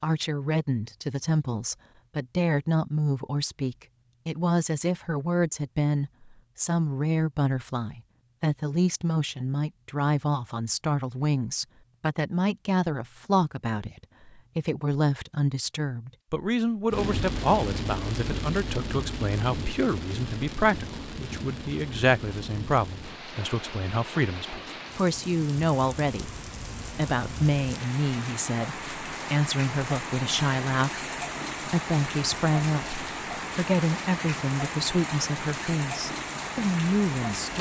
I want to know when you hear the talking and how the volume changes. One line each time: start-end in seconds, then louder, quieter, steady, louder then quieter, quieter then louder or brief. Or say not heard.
0.0-26.4 steady
26.9-37.5 steady.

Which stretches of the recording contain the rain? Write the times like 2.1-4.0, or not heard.
16.9-37.5.